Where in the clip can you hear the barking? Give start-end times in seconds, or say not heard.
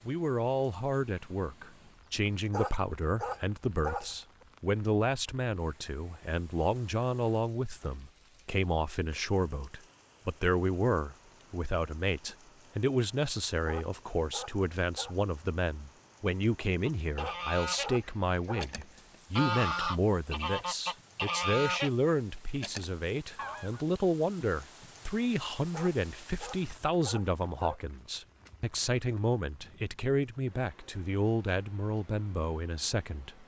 2.5-4.5, 13.7-15.2, 17.1-18.7, 25.7-27.8.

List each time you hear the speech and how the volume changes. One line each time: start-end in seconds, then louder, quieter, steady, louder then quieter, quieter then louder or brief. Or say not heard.
0.1-33.4 steady.